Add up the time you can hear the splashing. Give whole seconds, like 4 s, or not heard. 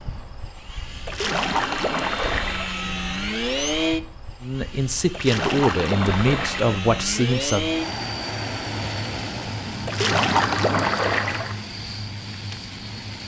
5 s.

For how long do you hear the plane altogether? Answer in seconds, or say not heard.
13 s.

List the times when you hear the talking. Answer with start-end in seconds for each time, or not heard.
4.4-7.8.